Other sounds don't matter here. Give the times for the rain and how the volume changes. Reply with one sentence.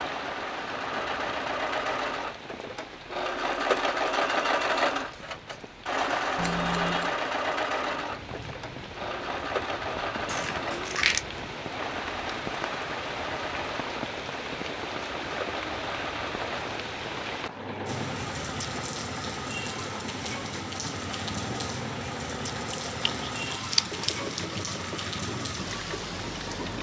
You can hear the rain from 0.0 to 26.7 s, getting louder.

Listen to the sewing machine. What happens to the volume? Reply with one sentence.
The loudness of the sewing machine goes down.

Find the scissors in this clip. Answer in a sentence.
The scissors can be heard from 6.3 to 7.1 s, from 10.2 to 11.2 s and from 22.9 to 24.6 s.